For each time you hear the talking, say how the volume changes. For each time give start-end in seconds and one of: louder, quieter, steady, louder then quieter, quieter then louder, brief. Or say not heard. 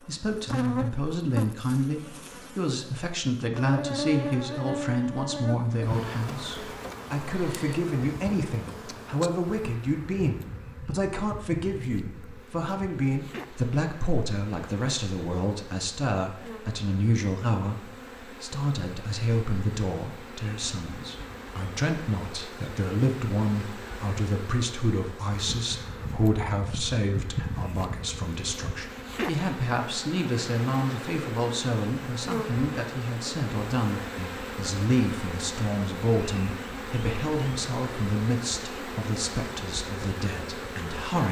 0.0-41.2 steady.